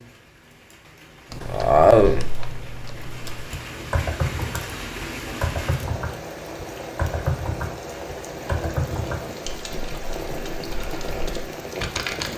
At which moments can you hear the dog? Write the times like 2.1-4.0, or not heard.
not heard.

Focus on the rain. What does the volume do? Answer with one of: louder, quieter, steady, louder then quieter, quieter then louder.
louder.